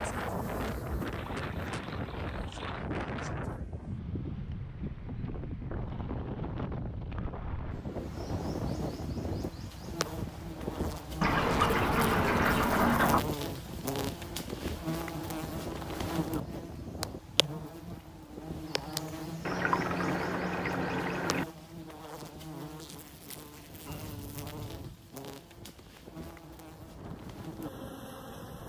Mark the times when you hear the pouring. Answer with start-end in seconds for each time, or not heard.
1.1-2.9, 11.2-13.2, 19.4-21.4.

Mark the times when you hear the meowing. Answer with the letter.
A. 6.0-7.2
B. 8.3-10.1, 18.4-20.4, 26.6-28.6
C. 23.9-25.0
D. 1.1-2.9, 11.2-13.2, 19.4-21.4
C.